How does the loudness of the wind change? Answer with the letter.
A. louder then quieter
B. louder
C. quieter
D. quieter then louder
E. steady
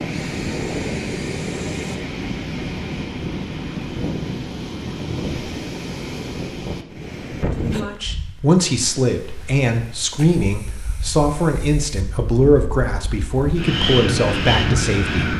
D.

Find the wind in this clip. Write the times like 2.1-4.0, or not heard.
0.0-15.3.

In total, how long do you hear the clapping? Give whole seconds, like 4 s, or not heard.
not heard.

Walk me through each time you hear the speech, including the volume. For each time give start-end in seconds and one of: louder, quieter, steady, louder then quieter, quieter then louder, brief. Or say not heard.
7.5-15.2 steady.